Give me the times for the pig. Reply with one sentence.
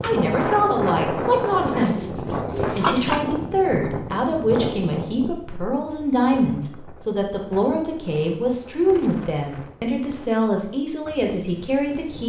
You can hear the pig from 0.0 to 3.2 s.